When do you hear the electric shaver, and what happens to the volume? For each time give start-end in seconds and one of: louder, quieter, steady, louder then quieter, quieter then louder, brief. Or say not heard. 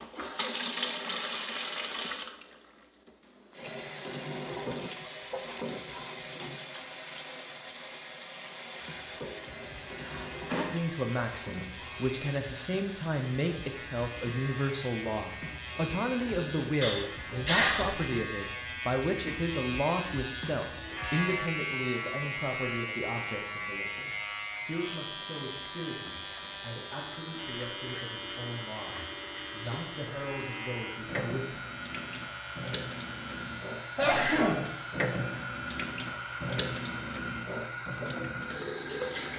8.8-37.5 louder then quieter.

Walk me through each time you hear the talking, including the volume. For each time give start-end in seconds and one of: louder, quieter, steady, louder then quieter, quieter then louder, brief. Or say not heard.
10.7-31.5 quieter.